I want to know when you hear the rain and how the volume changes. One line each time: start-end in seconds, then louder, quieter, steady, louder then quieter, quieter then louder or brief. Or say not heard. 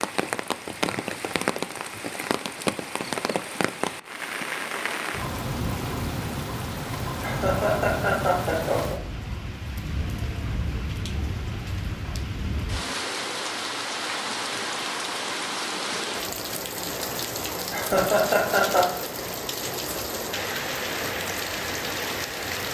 0.0-22.7 steady.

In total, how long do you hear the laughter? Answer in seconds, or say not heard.
3 s.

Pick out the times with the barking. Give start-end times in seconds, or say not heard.
not heard.